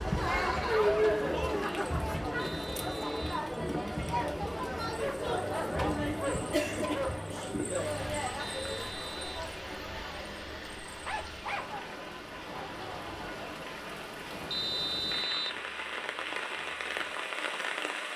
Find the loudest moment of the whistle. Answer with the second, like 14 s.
15 s.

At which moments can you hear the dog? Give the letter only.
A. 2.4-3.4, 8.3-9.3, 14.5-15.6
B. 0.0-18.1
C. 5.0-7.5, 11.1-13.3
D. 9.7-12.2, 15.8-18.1
C.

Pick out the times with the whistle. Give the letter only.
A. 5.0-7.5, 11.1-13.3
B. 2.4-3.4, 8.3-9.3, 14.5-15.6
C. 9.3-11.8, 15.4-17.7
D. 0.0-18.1
B.